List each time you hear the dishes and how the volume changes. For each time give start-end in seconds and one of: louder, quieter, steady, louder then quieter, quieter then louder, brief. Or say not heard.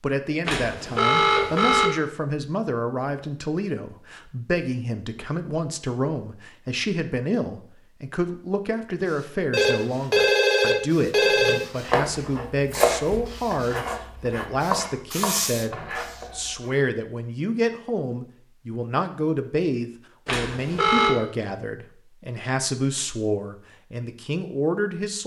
not heard.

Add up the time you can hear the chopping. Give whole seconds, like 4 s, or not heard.
5 s.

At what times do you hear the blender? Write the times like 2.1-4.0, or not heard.
not heard.